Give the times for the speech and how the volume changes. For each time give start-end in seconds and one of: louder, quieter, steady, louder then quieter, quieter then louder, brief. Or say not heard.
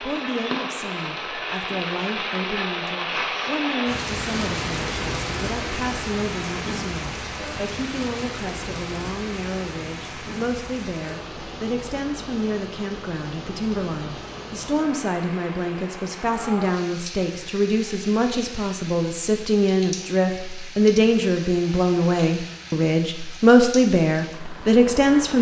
0.0-25.3 louder.